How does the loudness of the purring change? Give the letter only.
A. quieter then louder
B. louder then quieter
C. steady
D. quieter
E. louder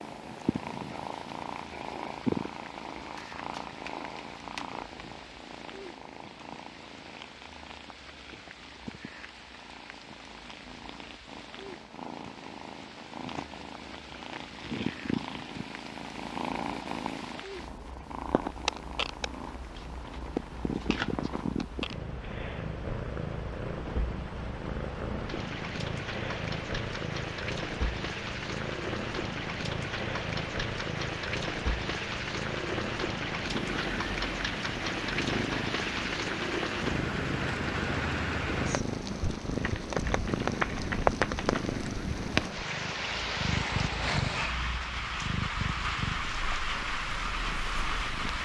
C.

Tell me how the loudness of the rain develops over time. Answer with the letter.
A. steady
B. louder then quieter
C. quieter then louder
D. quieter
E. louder
E.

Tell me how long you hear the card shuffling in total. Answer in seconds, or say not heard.
5 s.